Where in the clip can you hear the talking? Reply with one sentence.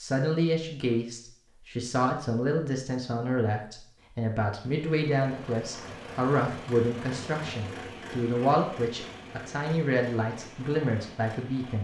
The talking can be heard from 0.0 to 11.8 s.